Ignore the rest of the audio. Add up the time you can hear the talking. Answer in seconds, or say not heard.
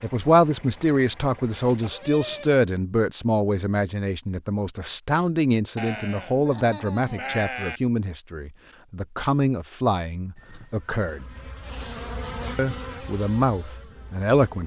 13 s.